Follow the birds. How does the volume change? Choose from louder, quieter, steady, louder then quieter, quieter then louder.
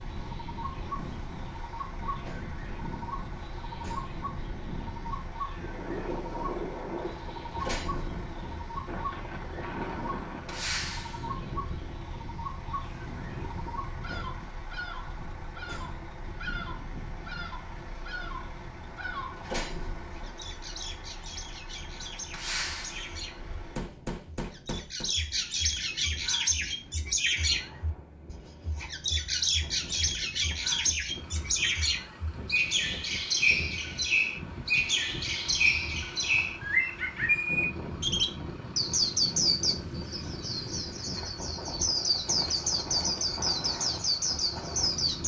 louder.